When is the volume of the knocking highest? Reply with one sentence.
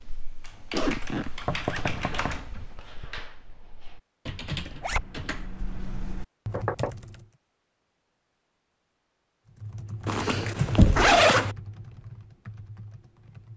The loudest moment of the knocking is at 11 seconds.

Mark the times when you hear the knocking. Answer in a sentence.
The knocking can be heard from 1.4 to 2.6 s, from 6.5 to 6.9 s and from 10.8 to 11.2 s.